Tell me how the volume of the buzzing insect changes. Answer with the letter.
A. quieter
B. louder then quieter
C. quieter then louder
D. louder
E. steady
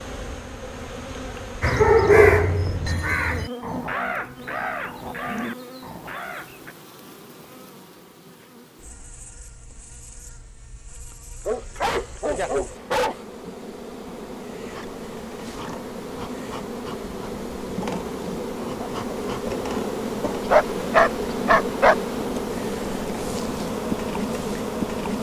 C.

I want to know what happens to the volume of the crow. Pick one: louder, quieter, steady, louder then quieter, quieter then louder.
quieter.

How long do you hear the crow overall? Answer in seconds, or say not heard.
5 s.